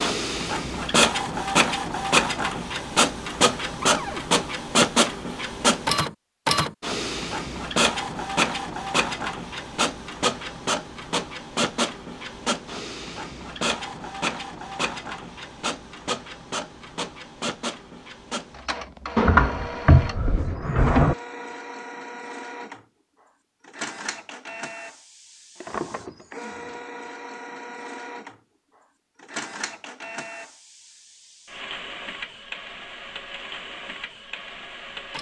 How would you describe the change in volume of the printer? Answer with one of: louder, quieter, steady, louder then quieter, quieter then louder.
quieter.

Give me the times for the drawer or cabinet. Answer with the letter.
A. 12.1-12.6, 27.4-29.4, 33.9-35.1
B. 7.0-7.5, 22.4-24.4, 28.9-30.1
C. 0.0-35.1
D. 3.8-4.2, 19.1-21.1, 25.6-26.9
D.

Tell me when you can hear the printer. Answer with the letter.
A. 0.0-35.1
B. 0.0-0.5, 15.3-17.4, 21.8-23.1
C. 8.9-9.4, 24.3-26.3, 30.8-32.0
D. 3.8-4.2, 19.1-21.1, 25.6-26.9
A.